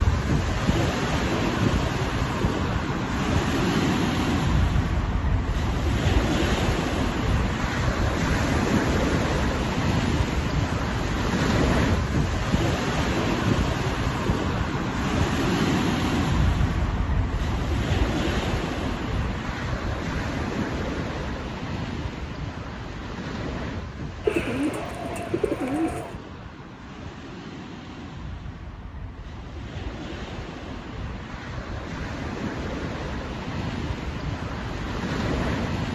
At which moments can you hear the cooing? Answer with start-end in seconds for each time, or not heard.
24.2-26.1.